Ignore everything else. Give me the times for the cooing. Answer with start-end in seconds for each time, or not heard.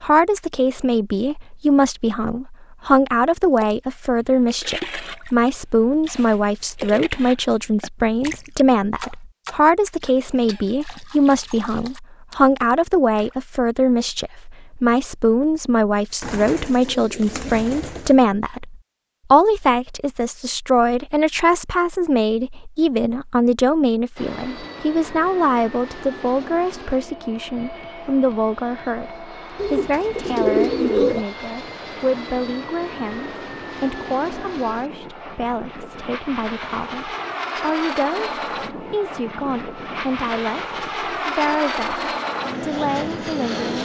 16.2-18.1, 29.6-31.2.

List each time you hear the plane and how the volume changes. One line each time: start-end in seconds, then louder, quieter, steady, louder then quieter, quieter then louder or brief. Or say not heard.
24.1-43.8 louder.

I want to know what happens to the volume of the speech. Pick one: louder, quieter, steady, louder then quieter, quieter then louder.
quieter.